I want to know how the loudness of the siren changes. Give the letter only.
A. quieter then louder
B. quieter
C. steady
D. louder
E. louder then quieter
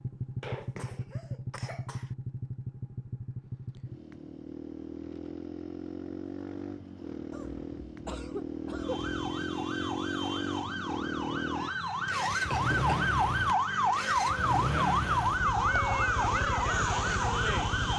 D.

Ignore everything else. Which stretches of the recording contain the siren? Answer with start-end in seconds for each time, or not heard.
8.8-17.9.